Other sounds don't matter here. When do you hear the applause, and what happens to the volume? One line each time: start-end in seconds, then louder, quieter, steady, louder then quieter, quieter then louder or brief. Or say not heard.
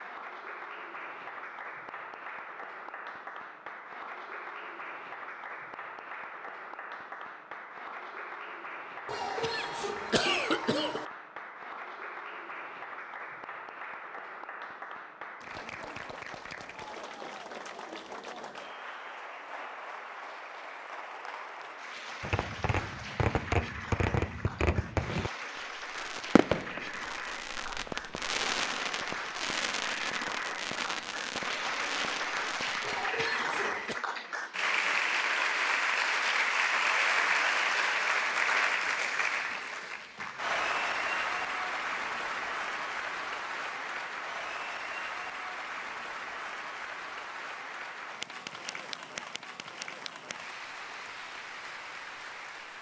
0.0-52.7 louder then quieter.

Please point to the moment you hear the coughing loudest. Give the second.
10 s.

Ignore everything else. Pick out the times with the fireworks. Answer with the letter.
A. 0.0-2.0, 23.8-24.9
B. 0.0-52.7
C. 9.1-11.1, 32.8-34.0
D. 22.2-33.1
D.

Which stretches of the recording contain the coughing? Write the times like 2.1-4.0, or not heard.
9.1-11.1, 32.8-34.0.